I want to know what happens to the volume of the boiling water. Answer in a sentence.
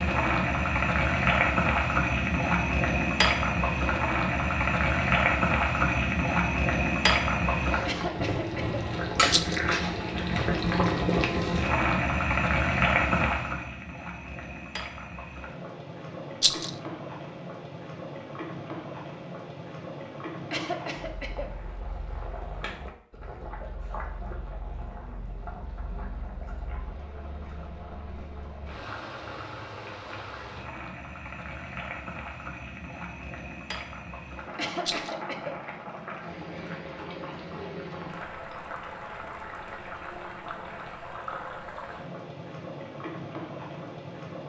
The loudness of the boiling water goes down.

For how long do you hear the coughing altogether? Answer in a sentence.
You can hear the coughing for 3 seconds altogether.